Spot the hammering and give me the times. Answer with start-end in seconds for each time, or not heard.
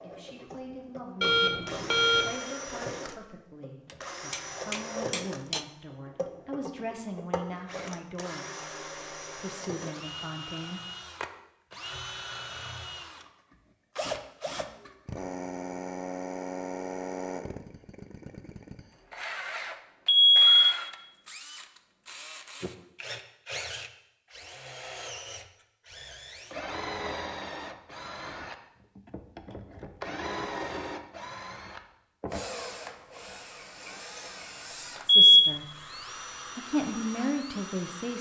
3.9-5.7.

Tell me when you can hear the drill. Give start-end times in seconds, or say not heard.
0.0-38.1.